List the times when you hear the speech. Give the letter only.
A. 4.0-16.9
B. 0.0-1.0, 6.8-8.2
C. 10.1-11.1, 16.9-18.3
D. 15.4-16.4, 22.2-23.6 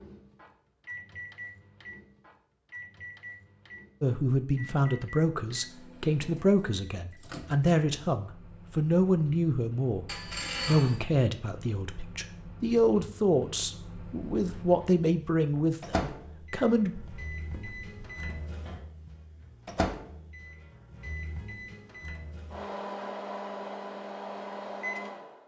A.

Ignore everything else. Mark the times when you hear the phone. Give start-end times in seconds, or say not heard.
10.1-11.1, 16.9-18.3.